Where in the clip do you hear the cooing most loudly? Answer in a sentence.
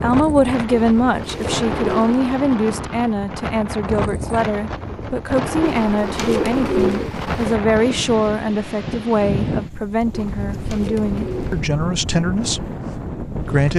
The volume of the cooing peaks at 7 seconds.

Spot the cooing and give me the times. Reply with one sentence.
The cooing can be heard from 0.7 to 2.2 s, from 5.6 to 7.6 s and from 10.1 to 11.7 s.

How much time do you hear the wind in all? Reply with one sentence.
You can hear the wind for 14 seconds altogether.